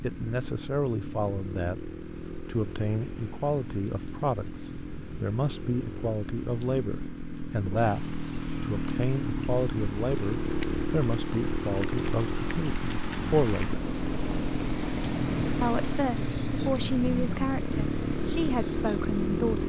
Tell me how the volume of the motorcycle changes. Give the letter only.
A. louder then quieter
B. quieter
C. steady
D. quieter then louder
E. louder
E.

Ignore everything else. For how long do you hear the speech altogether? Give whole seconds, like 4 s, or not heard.
18 s.